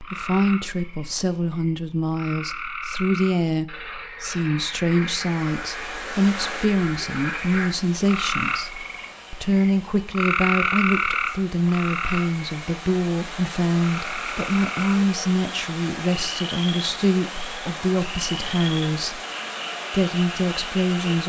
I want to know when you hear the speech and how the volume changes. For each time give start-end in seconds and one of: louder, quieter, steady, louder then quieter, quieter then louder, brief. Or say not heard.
0.0-19.2 steady
19.9-21.2 brief.